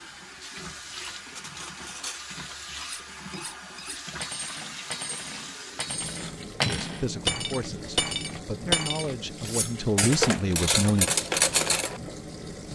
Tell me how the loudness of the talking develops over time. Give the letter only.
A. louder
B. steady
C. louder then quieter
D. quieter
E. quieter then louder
E.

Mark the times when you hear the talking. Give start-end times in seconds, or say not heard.
6.7-11.1.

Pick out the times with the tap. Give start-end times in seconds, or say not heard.
0.0-12.7.